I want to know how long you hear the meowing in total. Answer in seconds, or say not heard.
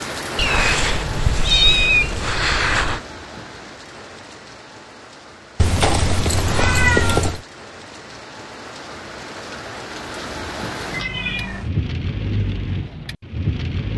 5 s.